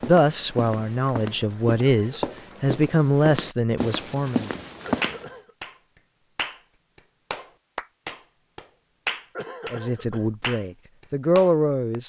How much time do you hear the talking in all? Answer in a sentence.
The talking can be heard for 7 seconds in total.